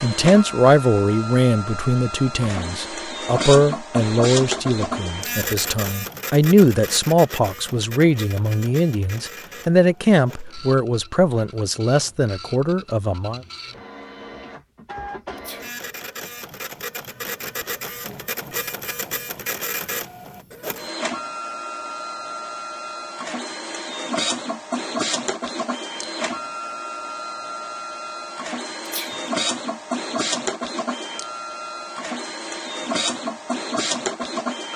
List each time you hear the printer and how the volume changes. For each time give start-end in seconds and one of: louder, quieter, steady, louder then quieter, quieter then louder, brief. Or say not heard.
0.0-34.7 quieter then louder.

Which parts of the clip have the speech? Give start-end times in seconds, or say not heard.
0.0-13.4.